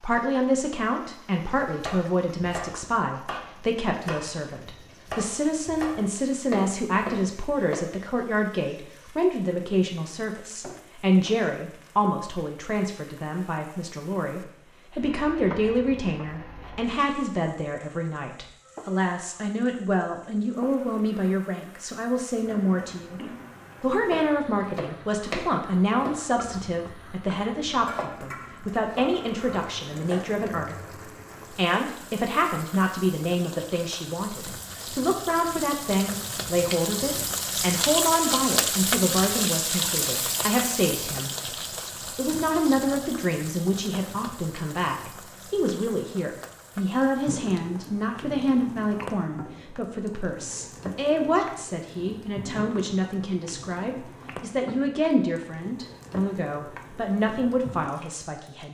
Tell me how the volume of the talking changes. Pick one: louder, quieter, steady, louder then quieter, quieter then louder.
steady.